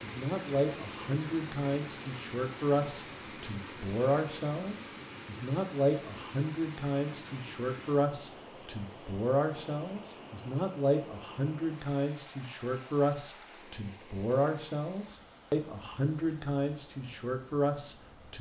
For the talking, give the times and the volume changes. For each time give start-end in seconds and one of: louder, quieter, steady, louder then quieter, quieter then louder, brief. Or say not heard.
0.0-18.3 steady.